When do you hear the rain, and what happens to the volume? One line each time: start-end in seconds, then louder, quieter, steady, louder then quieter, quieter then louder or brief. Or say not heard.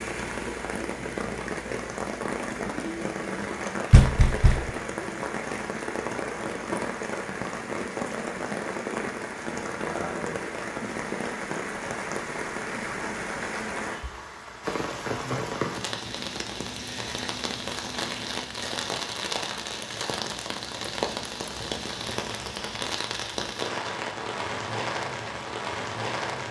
0.0-26.4 steady.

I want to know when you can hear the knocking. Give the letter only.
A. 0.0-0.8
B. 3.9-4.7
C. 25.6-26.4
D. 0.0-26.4
B.